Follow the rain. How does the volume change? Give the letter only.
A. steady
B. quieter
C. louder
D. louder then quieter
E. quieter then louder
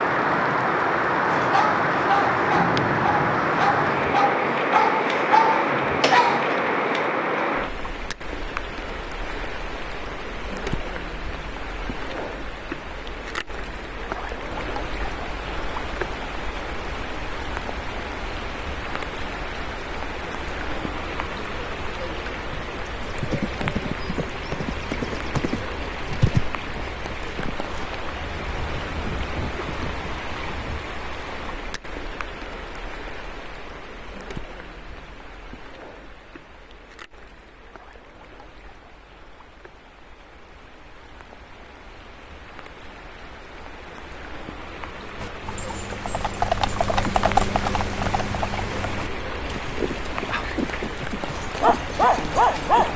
E.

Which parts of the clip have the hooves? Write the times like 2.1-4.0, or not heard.
23.0-30.9, 45.2-52.9.